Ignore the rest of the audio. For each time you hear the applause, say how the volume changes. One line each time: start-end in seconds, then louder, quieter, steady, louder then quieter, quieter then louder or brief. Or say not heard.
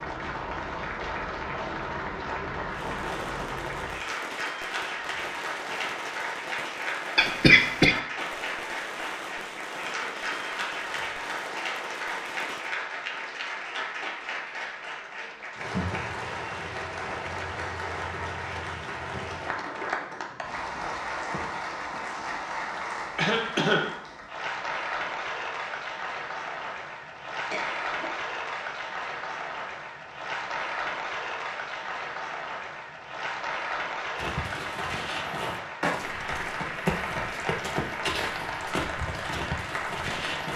0.0-40.5 steady.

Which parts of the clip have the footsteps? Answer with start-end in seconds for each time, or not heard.
34.1-40.5.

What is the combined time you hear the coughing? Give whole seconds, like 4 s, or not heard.
3 s.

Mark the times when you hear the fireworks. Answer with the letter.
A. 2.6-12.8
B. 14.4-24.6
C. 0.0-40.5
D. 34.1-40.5
A.